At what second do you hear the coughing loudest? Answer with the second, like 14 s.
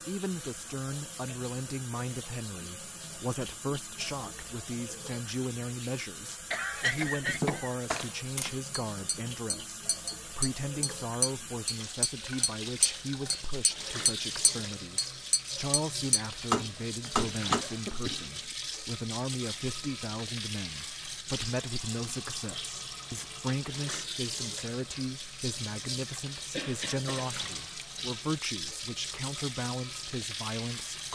7 s.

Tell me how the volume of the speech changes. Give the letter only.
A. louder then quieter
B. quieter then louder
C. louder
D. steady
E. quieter
D.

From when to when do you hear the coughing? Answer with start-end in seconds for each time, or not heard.
6.5-7.8, 17.0-18.6, 26.5-27.3.